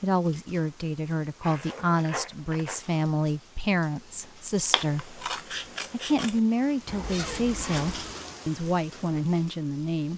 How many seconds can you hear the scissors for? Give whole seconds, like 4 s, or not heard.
2 s.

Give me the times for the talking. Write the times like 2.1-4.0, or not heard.
0.0-5.2, 5.9-10.1.